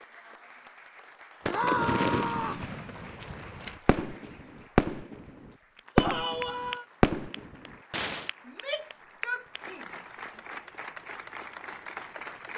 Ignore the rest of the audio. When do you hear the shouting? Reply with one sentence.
You can hear the shouting from 1.4 to 2.6 s, from 6.0 to 6.8 s and from 8.4 to 9.8 s.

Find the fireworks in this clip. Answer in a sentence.
The fireworks can be heard from 1.4 to 5.2 s, from 6.0 to 6.4 s and from 7.0 to 8.3 s.